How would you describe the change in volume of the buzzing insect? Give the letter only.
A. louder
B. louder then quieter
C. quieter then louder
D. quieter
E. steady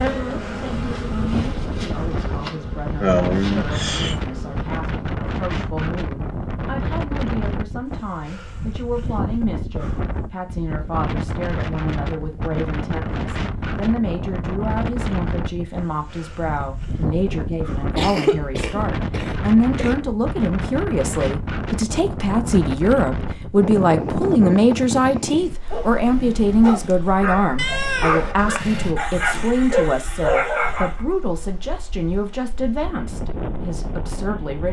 D.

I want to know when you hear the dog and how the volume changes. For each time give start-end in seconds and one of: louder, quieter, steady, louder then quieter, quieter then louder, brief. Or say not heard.
25.7-31.1 louder.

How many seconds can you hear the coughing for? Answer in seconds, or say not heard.
4 s.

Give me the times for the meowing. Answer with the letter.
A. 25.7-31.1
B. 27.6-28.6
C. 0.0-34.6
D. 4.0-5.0
B.